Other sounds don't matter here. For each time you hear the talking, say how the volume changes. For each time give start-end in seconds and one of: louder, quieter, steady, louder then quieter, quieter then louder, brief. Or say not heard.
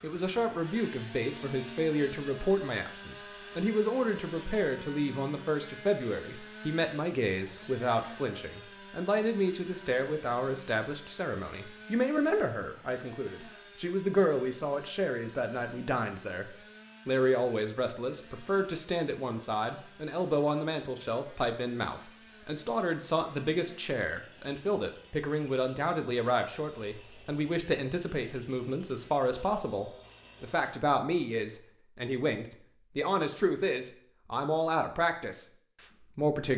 0.0-36.5 steady.